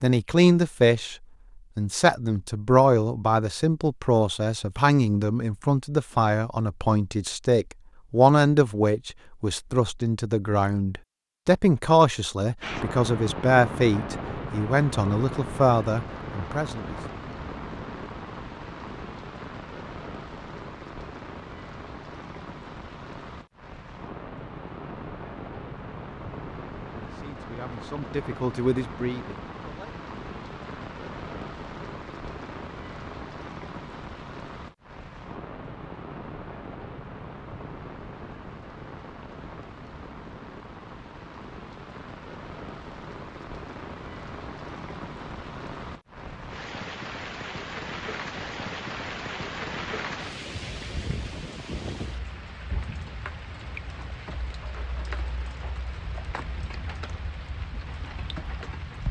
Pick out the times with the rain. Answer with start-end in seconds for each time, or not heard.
12.6-59.0.